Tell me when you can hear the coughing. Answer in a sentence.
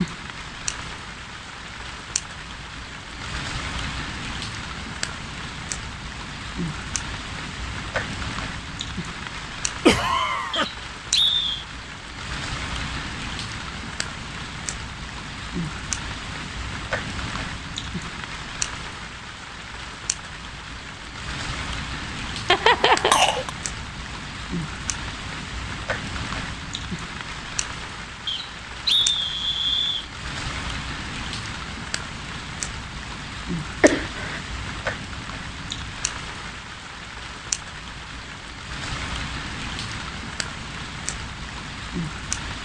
The coughing can be heard from 9.8 to 10.7 s, from 22.4 to 23.5 s and from 33.8 to 34.4 s.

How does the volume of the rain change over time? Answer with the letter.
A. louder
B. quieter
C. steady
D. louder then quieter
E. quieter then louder
C.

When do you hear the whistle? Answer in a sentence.
You can hear the whistle from 10.5 to 11.7 s and from 28.2 to 30.1 s.